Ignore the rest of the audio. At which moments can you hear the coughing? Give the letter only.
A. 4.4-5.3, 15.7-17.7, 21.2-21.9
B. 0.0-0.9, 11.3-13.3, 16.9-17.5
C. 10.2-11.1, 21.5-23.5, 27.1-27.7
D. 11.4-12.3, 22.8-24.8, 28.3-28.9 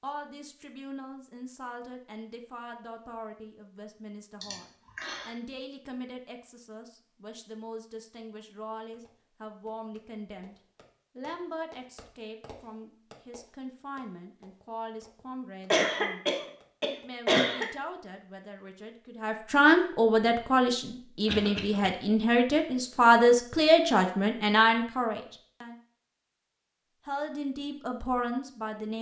A.